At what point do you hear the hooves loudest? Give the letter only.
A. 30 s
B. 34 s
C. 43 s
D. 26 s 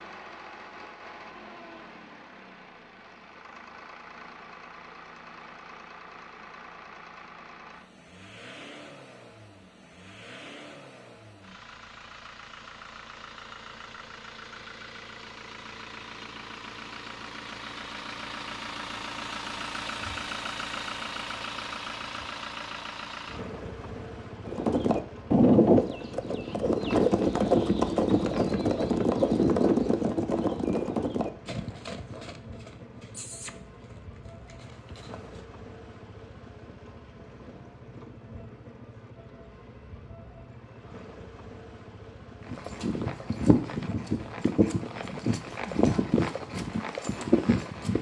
D.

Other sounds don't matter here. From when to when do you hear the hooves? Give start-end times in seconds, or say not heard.
24.4-35.4, 42.5-47.9.